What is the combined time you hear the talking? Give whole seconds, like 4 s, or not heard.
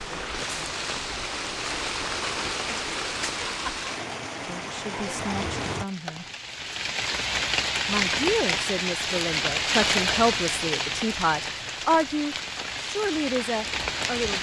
8 s.